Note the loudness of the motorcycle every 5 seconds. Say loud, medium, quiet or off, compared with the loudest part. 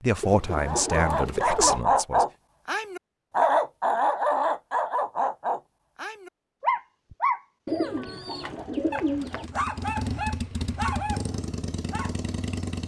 off, medium, loud.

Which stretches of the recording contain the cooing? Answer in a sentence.
You can hear the cooing from 0.2 to 1.9 s and from 7.7 to 9.5 s.